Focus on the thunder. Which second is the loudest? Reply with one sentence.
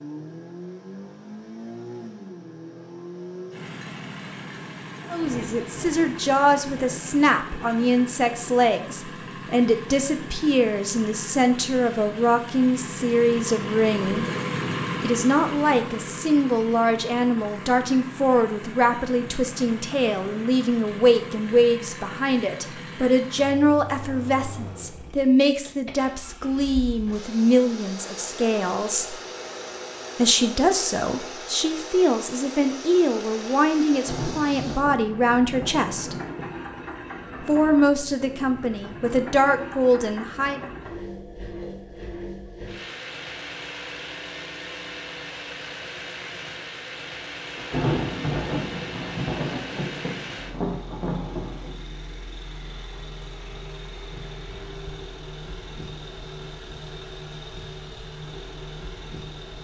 The volume of the thunder peaks at 48 seconds.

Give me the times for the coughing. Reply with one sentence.
You can't hear the coughing here.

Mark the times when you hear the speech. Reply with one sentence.
You can hear the speech from 5.1 to 14.2 s, from 15.0 to 29.2 s, from 30.1 to 36.1 s and from 37.4 to 40.6 s.